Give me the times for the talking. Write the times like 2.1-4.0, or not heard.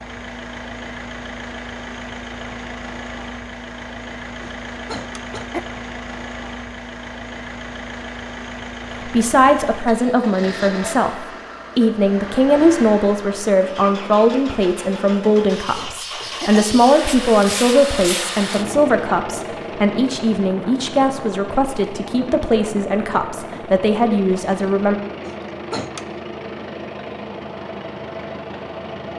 9.1-24.9.